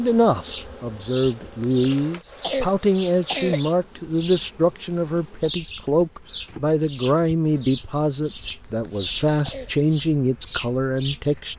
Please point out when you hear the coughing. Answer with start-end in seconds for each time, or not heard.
1.6-3.6, 8.8-9.9.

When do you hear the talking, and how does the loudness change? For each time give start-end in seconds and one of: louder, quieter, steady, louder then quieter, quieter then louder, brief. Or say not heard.
0.0-11.5 steady.